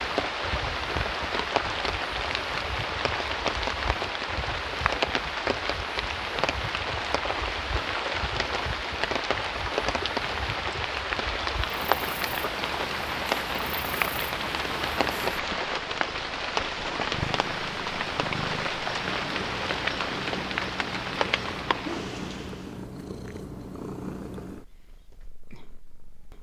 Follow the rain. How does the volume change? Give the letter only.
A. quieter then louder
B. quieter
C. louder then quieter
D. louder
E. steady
E.